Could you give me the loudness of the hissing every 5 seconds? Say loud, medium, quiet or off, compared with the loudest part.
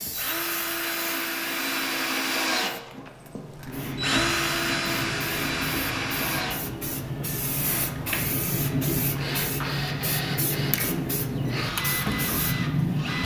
medium, loud, loud.